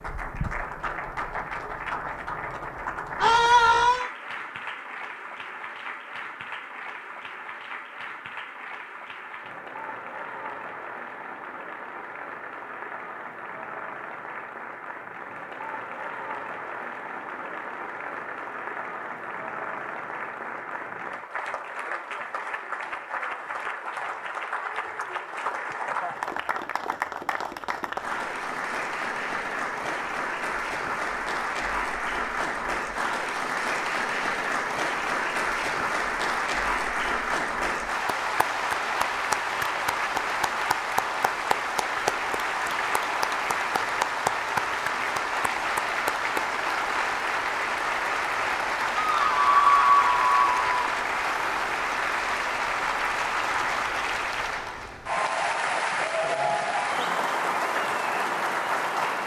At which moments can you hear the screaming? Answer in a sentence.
The screaming can be heard from 3.1 to 4.0 s and from 49.0 to 50.6 s.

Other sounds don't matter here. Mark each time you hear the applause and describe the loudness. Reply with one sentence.
You can hear the applause from 0.0 to 59.2 s, getting louder.